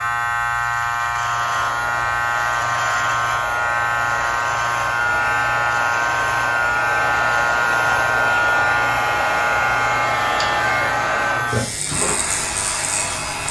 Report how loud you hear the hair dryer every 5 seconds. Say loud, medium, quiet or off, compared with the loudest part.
medium, loud, loud.